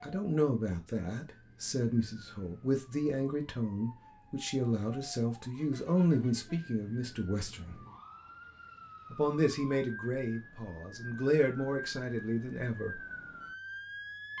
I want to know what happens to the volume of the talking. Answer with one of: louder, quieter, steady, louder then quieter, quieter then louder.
steady.